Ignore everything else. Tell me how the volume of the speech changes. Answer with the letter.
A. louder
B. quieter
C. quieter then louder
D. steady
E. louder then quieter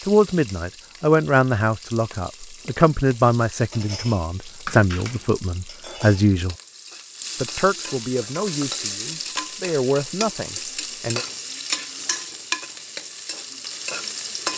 B.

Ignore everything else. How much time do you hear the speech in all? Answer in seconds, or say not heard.
10 s.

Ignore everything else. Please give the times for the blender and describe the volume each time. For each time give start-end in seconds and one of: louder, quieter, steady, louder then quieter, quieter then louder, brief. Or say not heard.
not heard.